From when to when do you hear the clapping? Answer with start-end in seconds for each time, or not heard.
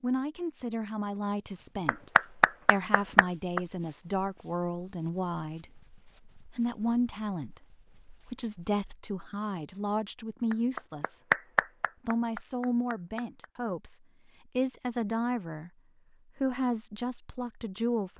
1.9-3.6, 10.5-13.4.